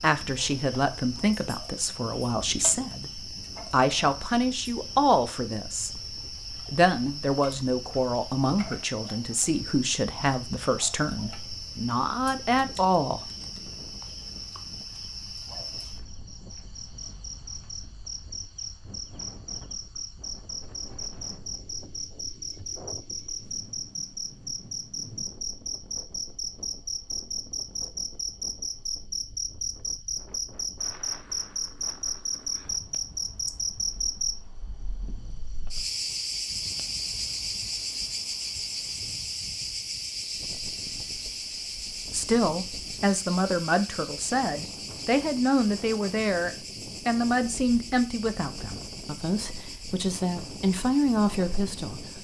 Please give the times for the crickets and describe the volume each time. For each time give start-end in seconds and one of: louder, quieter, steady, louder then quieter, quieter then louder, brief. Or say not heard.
0.0-52.1 louder then quieter.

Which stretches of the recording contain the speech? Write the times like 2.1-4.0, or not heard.
0.0-13.3, 42.1-52.1.